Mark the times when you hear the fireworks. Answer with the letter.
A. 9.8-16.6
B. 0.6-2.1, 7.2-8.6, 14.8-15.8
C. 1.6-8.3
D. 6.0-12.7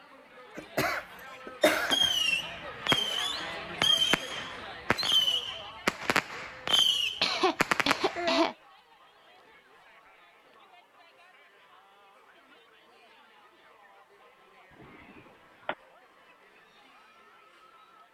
C.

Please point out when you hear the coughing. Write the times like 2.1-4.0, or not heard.
0.6-2.1, 7.2-8.6, 14.8-15.8.